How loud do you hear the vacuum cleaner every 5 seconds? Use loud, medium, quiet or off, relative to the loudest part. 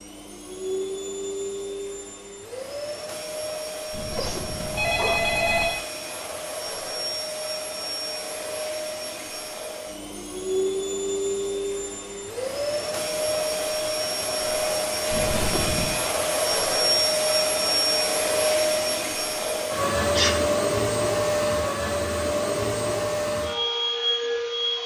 medium, medium, loud, loud, loud.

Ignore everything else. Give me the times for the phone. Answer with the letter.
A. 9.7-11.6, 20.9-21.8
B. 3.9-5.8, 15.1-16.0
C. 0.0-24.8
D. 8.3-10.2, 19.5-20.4
B.